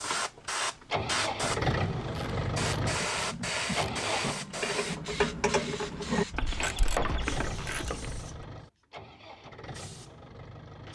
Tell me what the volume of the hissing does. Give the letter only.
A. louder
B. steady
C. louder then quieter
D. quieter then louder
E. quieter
E.